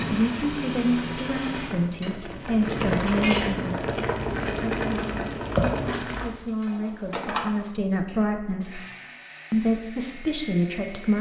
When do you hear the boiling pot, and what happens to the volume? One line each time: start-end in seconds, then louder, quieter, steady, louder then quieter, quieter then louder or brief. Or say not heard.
0.0-6.3 louder.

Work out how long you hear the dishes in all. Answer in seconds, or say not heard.
3 s.